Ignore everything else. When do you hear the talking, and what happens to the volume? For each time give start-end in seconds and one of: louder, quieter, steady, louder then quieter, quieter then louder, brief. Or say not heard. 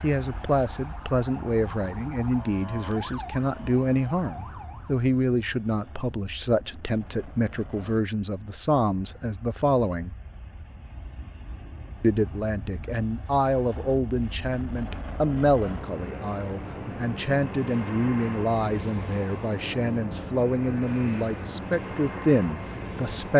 0.0-10.2 steady
12.0-23.3 steady.